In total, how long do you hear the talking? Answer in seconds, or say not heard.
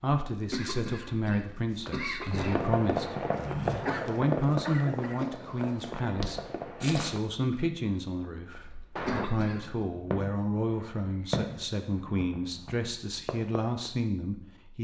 14 s.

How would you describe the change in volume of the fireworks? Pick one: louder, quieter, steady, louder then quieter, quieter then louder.
quieter.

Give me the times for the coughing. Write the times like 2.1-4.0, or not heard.
0.3-2.6, 8.6-9.8.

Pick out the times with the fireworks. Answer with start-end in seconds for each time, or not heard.
2.3-13.9.